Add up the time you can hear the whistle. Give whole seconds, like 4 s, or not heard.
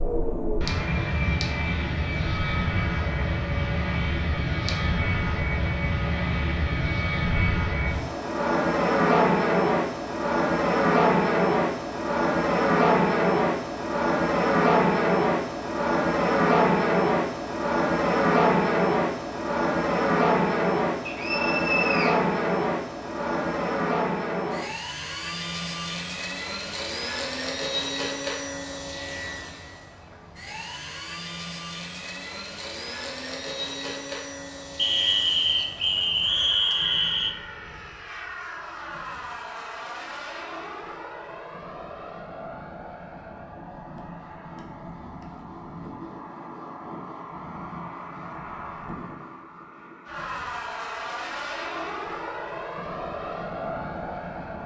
4 s.